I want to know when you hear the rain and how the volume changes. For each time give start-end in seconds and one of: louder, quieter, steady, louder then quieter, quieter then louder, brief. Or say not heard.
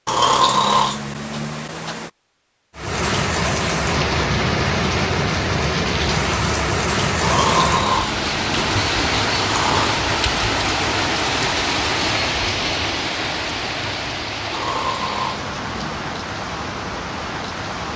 2.8-17.9 quieter.